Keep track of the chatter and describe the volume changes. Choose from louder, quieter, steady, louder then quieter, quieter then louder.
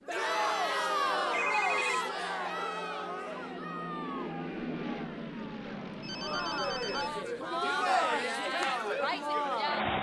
quieter then louder.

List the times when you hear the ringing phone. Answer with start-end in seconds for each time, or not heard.
1.4-1.8, 5.7-7.2.